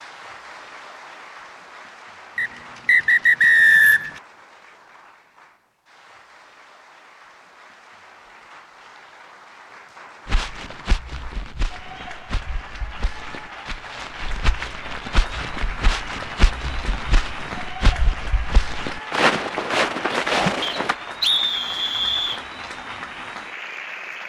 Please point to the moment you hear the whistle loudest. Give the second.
4 s.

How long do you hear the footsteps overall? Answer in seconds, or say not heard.
11 s.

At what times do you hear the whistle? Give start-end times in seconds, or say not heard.
2.4-4.1, 20.6-22.4.